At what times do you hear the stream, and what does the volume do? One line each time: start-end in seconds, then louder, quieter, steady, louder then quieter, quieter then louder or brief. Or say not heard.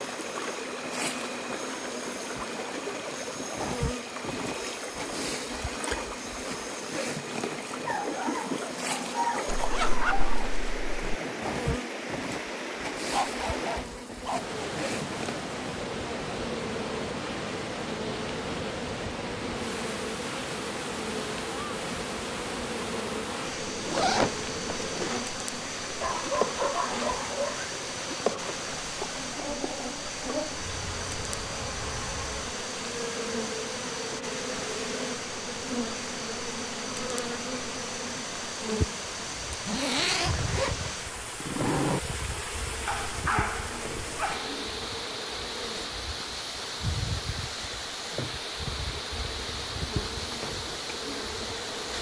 0.0-51.9 steady.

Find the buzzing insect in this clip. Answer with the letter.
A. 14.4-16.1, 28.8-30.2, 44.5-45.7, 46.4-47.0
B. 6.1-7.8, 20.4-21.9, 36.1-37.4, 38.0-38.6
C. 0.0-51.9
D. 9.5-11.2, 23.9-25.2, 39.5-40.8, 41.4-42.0
C.